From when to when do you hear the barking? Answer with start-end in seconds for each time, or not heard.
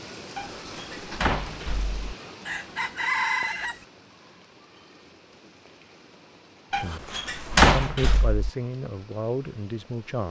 not heard.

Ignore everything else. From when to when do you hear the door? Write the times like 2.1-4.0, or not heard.
0.3-2.0, 6.7-8.5.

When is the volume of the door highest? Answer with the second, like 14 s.
8 s.